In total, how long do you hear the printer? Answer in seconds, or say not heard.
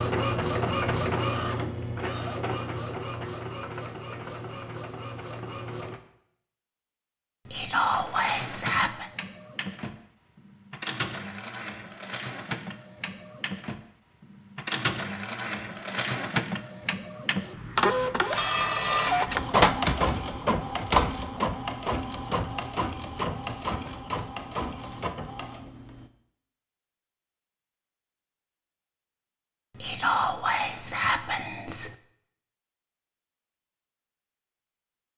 24 s.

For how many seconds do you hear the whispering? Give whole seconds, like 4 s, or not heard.
4 s.